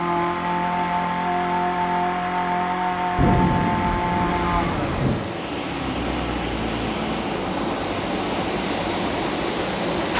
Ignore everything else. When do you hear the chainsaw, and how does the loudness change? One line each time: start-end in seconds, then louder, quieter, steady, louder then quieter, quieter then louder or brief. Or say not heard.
0.0-10.1 quieter.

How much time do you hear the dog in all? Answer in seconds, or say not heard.
not heard.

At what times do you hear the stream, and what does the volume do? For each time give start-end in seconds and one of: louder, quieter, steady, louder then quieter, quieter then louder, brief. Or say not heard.
4.2-10.1 louder.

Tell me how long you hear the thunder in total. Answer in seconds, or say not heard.
2 s.